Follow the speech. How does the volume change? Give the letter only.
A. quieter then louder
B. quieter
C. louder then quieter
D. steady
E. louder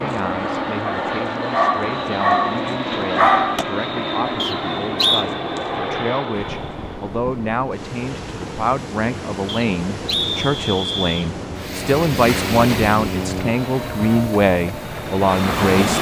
E.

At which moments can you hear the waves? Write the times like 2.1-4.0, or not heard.
6.3-15.9.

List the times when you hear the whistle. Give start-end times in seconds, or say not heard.
4.3-5.2, 9.4-11.3.